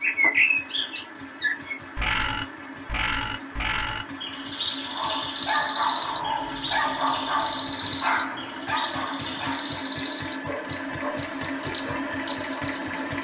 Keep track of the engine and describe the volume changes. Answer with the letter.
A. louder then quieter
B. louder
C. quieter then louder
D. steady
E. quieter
B.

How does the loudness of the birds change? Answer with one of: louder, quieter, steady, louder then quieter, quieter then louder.
quieter.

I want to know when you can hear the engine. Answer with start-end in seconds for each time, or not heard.
0.0-13.2.